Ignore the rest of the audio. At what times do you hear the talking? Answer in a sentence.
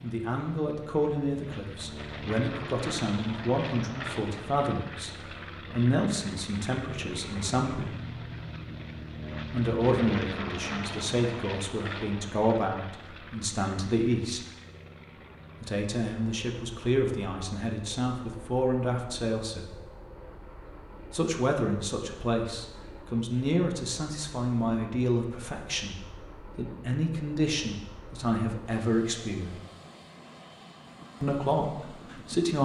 The talking can be heard from 0.0 to 7.9 s, from 9.5 to 14.4 s, from 15.6 to 19.8 s, from 21.1 to 29.6 s and from 31.2 to 32.6 s.